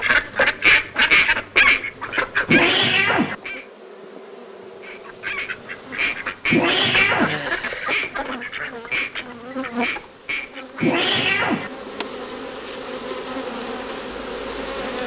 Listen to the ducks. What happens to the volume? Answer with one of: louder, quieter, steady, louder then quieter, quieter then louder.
quieter.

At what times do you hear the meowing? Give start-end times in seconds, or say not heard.
2.5-3.4, 6.5-7.4, 10.8-11.7.